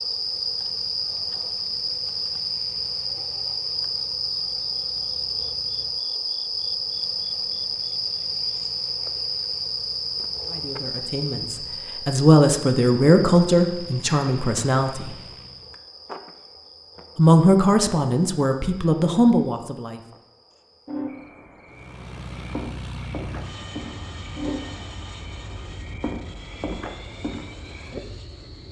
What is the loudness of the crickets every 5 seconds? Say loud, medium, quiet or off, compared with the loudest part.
loud, loud, medium, quiet, medium, medium.